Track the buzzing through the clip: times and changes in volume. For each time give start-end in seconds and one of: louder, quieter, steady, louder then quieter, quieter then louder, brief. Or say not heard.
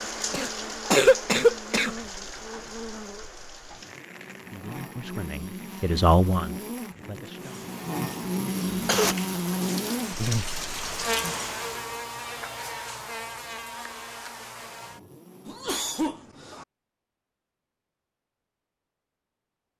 0.0-15.7 louder then quieter.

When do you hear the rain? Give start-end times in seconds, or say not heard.
0.0-11.9.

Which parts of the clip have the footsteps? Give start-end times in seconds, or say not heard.
not heard.